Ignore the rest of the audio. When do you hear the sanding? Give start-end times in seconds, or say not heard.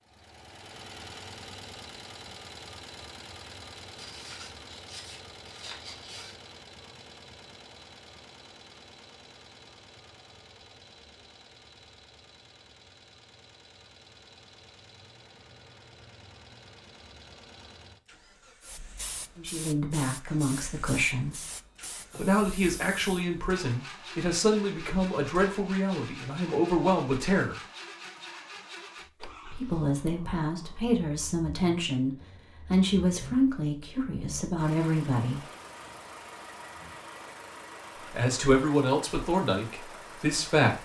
3.9-6.3.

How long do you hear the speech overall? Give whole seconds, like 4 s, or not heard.
16 s.